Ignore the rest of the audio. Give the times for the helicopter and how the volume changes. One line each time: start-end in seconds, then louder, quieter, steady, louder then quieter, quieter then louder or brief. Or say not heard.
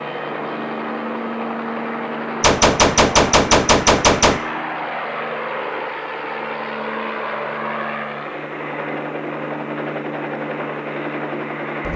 0.0-11.9 steady.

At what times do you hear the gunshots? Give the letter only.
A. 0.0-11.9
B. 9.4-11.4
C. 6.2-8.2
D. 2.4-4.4
D.